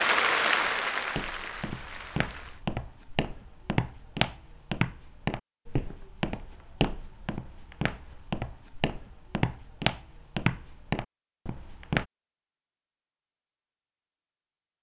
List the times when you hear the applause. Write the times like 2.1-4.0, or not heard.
0.0-2.6.